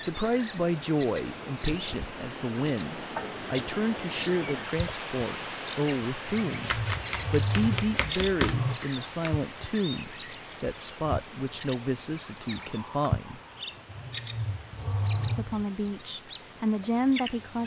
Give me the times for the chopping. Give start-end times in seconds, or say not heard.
6.6-9.3.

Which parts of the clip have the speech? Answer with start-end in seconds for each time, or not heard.
0.0-13.4, 15.3-17.6.